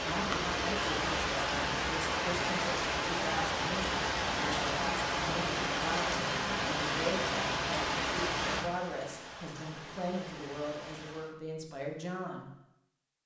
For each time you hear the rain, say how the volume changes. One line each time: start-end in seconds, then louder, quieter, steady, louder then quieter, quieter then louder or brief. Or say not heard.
0.0-11.3 quieter.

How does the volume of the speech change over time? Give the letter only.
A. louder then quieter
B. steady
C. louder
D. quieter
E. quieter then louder
B.